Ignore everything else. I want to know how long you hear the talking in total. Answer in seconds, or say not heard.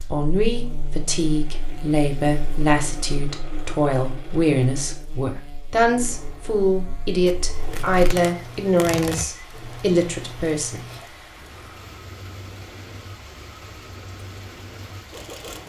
11 s.